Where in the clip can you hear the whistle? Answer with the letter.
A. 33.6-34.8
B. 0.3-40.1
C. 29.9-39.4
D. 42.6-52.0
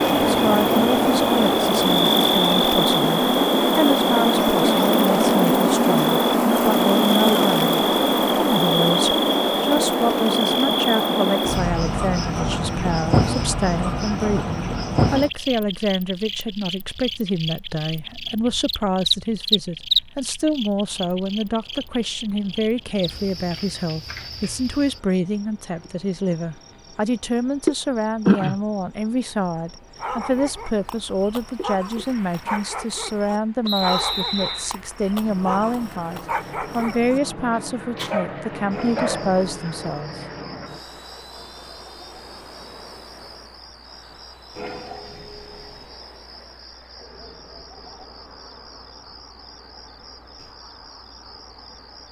A.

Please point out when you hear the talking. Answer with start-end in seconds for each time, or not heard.
0.3-40.1.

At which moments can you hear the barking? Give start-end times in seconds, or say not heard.
29.9-39.4.